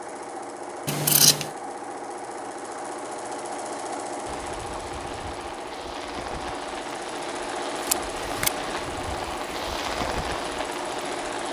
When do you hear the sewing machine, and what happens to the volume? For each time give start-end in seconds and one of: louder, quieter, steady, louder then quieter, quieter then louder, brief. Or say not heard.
0.0-11.4 steady.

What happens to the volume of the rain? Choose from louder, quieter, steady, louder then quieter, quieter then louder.
louder.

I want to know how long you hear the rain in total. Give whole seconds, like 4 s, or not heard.
7 s.